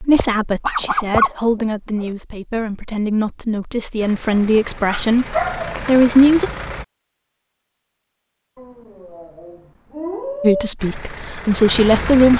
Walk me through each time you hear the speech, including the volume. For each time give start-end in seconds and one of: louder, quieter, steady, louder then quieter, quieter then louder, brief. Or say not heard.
0.0-6.5 louder
10.4-12.3 brief.